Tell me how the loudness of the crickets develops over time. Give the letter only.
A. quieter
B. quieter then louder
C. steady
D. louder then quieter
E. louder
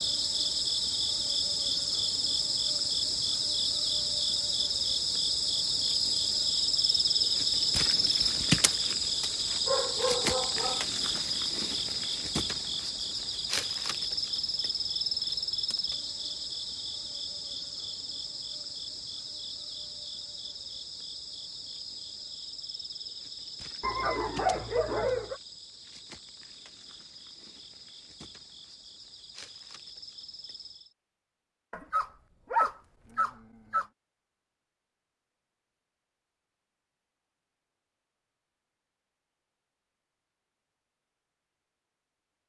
A.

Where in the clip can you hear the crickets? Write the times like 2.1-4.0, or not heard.
0.0-30.9.